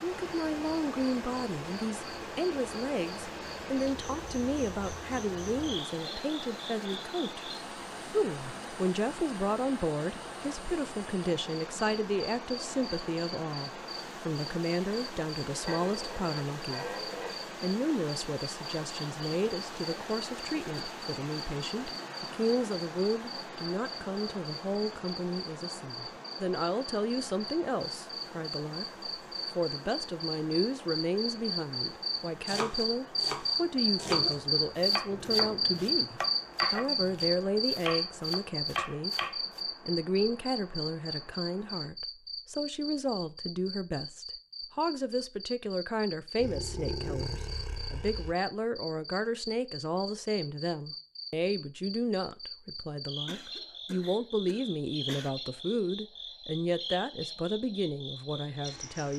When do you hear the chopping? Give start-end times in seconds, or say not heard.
32.5-39.6.